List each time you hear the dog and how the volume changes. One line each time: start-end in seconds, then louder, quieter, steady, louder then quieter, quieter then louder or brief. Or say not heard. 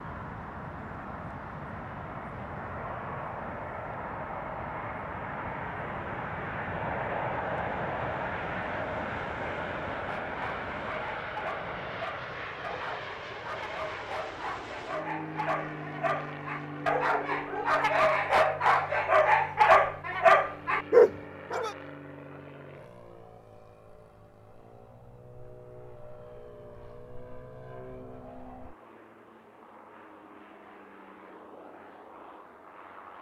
9.9-21.7 louder.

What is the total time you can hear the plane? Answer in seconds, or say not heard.
33 s.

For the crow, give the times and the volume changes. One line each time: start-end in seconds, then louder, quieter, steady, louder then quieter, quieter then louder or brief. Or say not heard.
not heard.